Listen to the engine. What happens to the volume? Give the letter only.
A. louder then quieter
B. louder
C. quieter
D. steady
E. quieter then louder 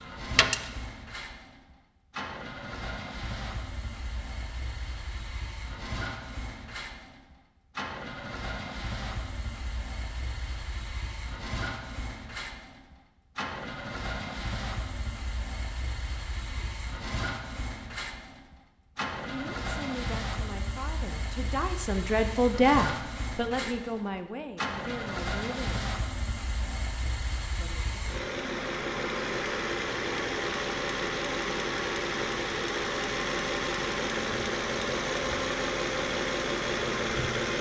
B.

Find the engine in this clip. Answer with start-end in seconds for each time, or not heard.
0.0-37.5.